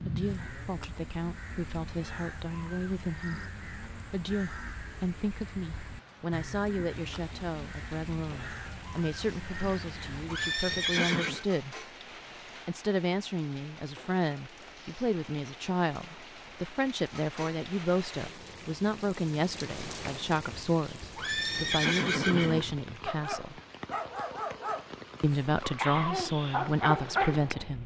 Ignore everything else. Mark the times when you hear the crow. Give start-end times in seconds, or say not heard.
0.1-10.6.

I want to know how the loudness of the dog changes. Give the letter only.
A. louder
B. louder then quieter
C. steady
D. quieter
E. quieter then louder
E.